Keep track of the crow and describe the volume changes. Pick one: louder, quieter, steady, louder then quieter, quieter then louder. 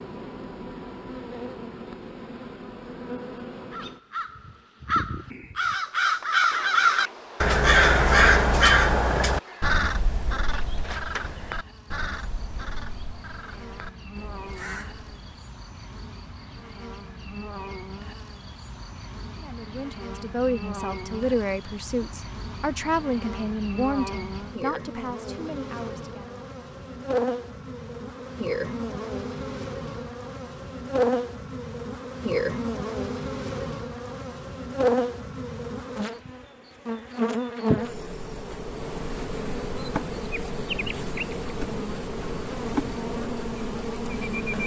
louder then quieter.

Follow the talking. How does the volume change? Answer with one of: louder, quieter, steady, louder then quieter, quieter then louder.
quieter.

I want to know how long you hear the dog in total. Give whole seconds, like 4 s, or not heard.
not heard.